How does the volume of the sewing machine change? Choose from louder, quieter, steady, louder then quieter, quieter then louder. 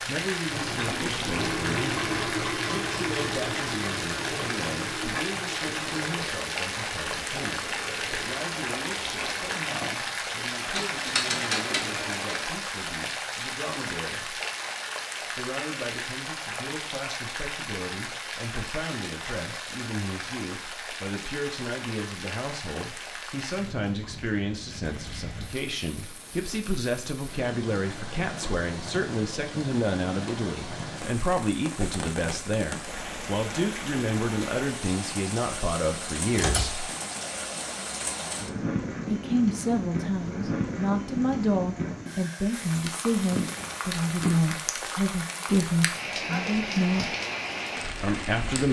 quieter.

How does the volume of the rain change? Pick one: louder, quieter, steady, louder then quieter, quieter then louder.
quieter then louder.